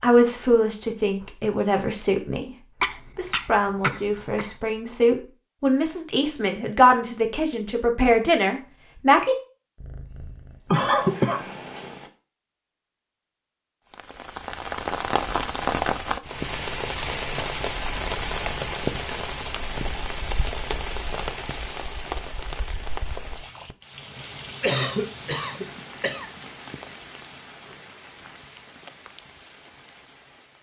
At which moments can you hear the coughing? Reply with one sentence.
The coughing can be heard from 2.8 to 4.5 s, from 10.7 to 11.4 s and from 24.6 to 26.3 s.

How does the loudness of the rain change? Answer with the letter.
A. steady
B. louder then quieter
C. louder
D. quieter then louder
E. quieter
E.